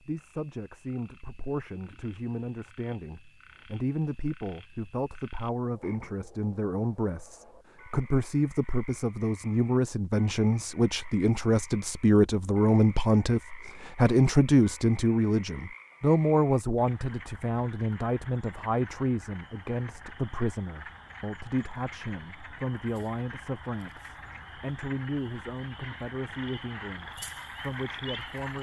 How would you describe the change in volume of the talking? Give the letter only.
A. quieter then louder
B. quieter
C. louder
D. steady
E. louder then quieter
E.